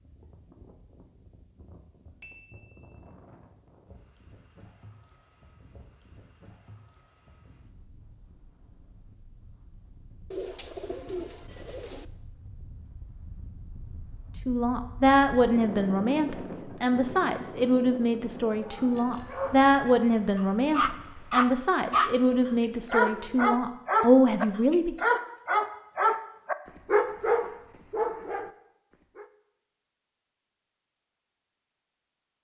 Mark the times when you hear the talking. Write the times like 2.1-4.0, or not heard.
14.4-24.9.